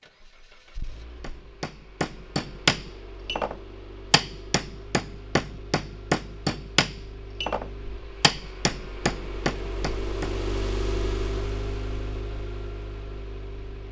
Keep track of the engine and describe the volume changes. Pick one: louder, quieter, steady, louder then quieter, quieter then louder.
louder.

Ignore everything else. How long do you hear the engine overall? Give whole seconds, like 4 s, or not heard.
14 s.